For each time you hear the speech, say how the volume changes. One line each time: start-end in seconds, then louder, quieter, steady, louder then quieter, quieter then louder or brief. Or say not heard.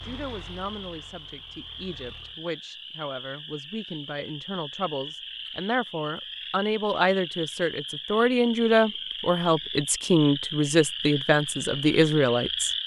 0.0-12.7 louder.